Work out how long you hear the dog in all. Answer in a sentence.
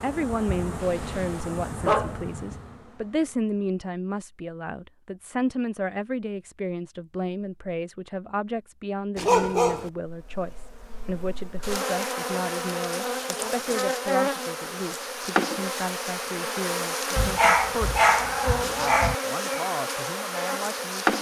You can hear the dog for 4 seconds altogether.